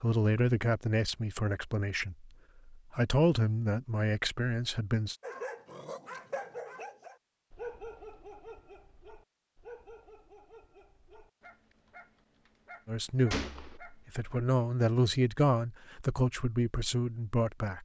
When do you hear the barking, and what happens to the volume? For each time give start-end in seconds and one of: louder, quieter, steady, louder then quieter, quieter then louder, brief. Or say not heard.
5.2-14.2 quieter.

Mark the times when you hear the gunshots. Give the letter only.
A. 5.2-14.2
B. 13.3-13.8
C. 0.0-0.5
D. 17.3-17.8
B.